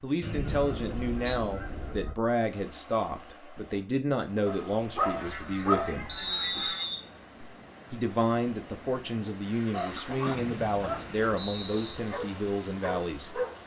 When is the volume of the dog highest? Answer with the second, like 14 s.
6 s.